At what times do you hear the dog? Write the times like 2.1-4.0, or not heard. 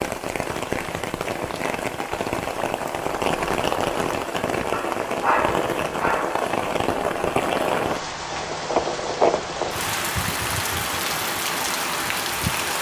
4.7-6.4.